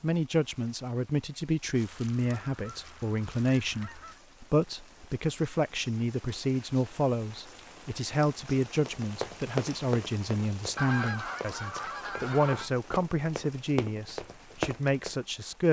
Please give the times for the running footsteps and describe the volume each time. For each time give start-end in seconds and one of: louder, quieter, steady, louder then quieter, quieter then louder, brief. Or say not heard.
8.8-15.2 quieter then louder.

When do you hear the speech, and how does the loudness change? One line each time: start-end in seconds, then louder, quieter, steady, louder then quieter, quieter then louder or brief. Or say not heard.
0.0-15.6 steady.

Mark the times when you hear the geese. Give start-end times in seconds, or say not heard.
1.8-4.2, 10.8-12.7.